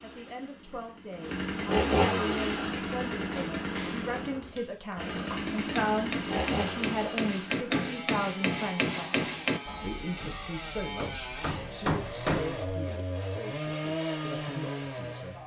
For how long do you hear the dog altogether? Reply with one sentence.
You can't hear the dog here.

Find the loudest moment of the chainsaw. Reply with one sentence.
The loudest moment of the chainsaw is at 2 seconds.